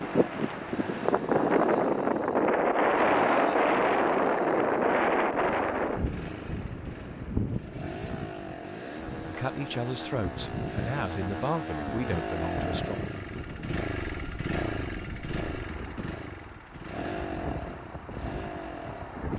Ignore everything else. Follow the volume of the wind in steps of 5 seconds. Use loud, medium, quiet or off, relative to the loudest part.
loud, medium, quiet, quiet.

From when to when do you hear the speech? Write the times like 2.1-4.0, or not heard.
9.2-13.1.